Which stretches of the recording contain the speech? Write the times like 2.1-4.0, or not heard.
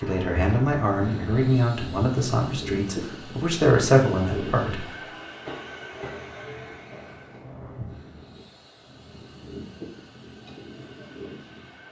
0.0-4.8.